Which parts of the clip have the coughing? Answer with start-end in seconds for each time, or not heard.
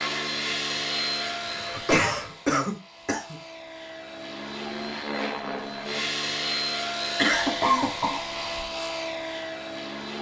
1.3-3.4, 7.2-8.7.